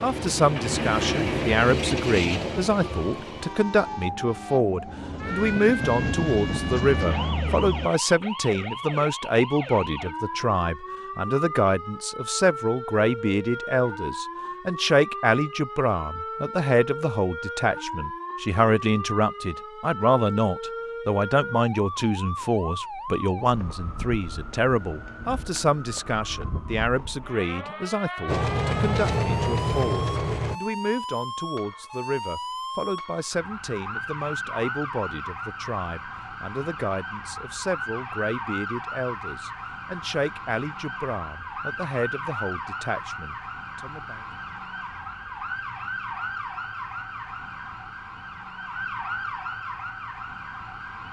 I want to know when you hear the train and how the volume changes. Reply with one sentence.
The train can be heard from 0.0 to 7.9 s, getting quieter then louder; and briefly from 28.2 to 30.6 s.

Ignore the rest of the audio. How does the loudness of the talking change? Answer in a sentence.
The loudness of the talking goes down.